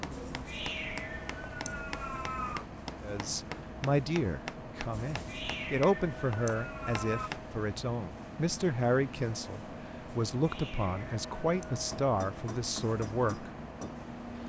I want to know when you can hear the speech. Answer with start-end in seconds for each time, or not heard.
3.0-13.5.